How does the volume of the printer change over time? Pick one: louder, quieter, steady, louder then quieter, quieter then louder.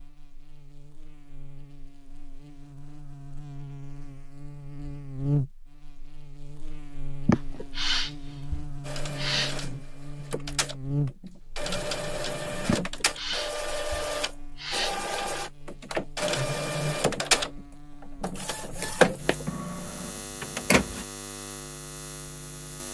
louder.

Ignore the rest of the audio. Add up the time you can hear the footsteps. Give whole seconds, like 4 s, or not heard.
not heard.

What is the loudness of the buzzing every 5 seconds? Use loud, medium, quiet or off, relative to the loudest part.
medium, loud, loud, medium, medium.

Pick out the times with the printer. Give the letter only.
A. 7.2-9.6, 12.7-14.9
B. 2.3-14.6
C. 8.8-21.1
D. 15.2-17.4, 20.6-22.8
C.